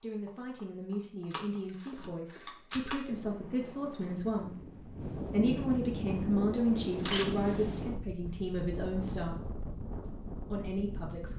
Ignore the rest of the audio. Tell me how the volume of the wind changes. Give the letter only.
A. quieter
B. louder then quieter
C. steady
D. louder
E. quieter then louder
B.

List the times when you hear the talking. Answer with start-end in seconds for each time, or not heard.
0.0-9.4, 10.1-11.3.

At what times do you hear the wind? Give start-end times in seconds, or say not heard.
3.0-11.3.